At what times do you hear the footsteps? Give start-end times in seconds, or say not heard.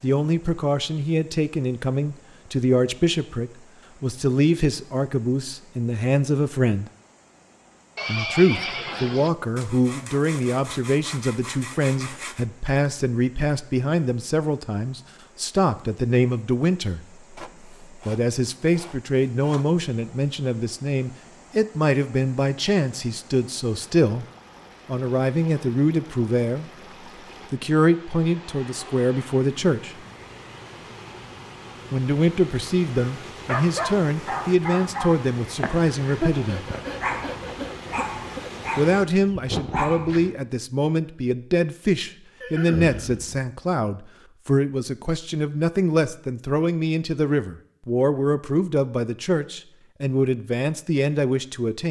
not heard.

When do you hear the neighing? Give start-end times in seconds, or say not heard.
8.0-9.3, 42.4-43.5.